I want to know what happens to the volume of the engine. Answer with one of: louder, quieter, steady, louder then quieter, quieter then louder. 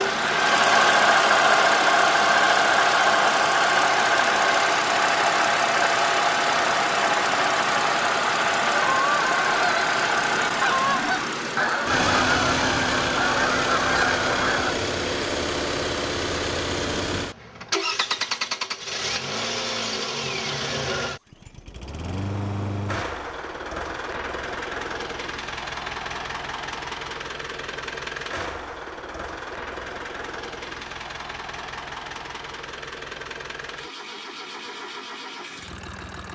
quieter.